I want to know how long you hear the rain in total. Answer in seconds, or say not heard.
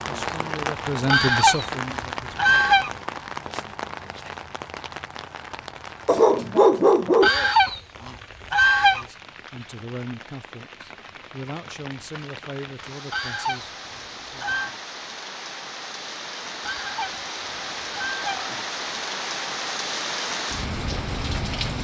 22 s.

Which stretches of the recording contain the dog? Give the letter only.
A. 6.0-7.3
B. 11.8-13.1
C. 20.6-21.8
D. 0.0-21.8
A.